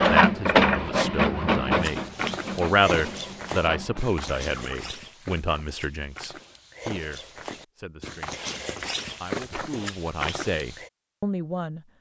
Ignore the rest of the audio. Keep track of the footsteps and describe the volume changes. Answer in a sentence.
The volume of the footsteps goes down, then up.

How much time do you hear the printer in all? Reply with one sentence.
The printer can be heard for 5 seconds in total.